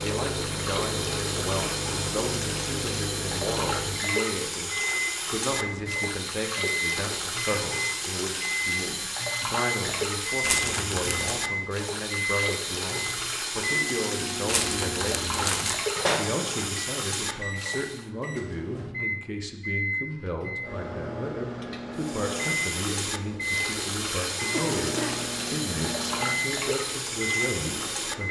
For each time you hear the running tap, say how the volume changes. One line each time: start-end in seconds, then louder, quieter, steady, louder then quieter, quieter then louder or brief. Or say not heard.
0.0-18.1 steady
21.9-28.2 steady.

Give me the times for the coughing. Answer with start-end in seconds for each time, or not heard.
24.5-25.3.